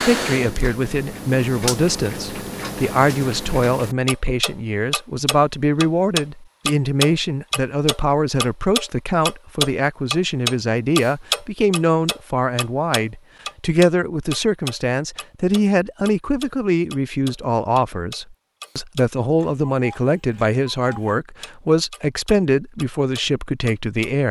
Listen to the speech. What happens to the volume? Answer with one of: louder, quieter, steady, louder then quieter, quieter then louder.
steady.